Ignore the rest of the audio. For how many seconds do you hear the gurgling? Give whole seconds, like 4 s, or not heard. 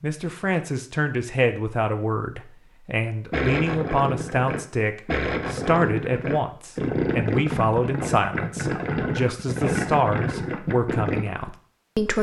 8 s.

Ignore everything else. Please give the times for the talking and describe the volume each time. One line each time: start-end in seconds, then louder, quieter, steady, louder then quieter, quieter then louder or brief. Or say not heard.
0.0-12.1 steady.